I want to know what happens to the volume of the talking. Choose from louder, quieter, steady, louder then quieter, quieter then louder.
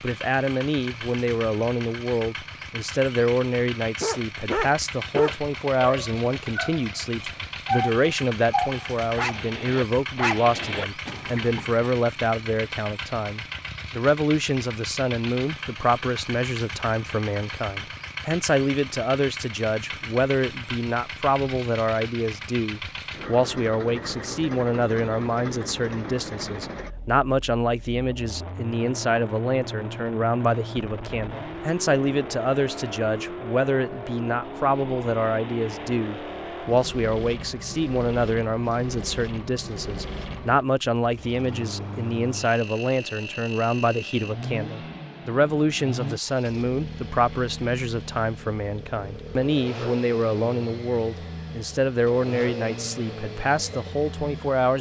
steady.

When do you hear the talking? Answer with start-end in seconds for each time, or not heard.
0.0-54.7.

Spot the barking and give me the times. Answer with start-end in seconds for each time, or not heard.
4.0-11.8.